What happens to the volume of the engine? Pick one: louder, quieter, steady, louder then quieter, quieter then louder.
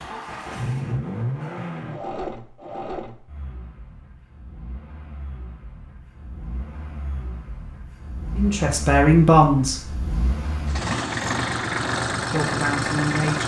quieter then louder.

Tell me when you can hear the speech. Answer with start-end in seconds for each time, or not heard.
8.3-9.9, 12.3-13.4.